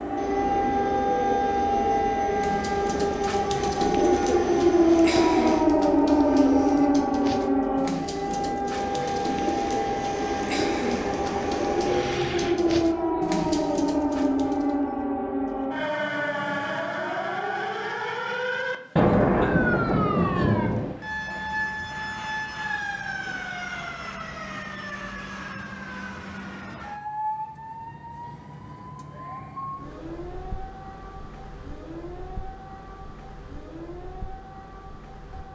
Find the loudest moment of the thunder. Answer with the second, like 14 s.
19 s.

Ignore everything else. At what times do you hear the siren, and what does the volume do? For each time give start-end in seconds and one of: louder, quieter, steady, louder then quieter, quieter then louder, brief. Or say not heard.
0.0-35.4 quieter.